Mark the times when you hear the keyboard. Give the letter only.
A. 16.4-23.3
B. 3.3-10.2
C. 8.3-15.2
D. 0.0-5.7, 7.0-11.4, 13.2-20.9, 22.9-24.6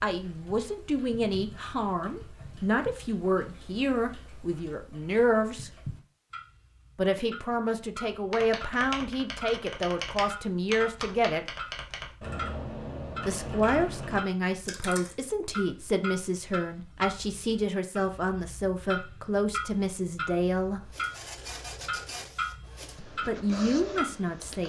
C.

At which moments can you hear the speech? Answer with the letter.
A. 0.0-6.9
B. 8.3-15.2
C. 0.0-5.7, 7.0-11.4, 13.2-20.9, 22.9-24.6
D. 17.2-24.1
C.